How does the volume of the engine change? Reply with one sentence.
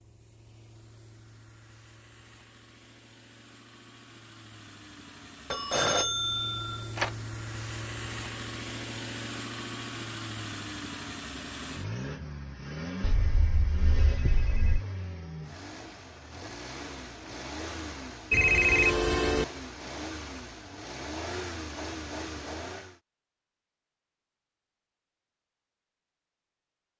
The loudness of the engine goes up.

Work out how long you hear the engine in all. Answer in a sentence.
You can hear the engine for 23 seconds altogether.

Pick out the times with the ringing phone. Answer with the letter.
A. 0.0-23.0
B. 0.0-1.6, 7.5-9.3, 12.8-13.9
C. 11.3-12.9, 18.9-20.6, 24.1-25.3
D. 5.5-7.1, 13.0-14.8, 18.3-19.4
D.